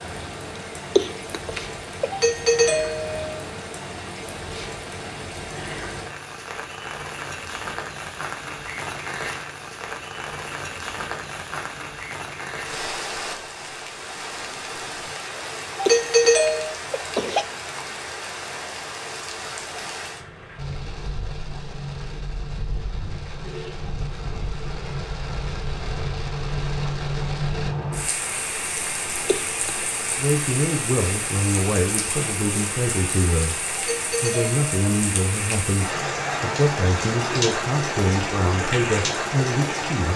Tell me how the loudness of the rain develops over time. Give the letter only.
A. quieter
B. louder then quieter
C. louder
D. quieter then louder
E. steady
C.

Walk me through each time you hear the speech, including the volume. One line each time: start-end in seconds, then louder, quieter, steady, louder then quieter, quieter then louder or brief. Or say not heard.
30.1-40.1 steady.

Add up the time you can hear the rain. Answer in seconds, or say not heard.
40 s.